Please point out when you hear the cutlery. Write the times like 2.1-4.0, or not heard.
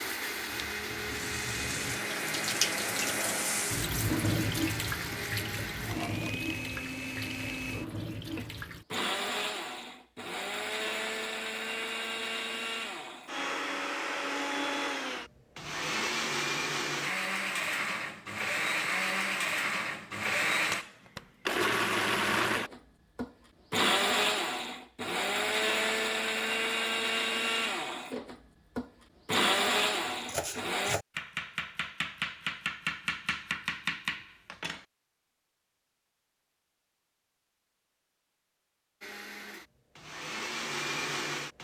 not heard.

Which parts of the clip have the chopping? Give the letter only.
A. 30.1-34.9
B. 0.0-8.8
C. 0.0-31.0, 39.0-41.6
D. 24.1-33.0
A.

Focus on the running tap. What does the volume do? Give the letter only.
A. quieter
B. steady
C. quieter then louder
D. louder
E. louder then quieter
E.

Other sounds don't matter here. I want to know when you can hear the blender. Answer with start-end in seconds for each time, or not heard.
0.0-31.0, 39.0-41.6.